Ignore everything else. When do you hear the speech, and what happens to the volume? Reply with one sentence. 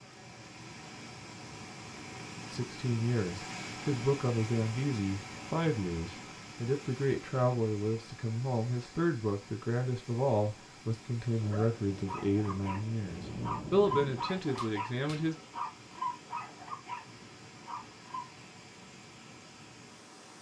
You can hear the speech from 2.5 to 15.3 s, at a steady volume.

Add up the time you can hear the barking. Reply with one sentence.
The barking can be heard for 7 seconds in total.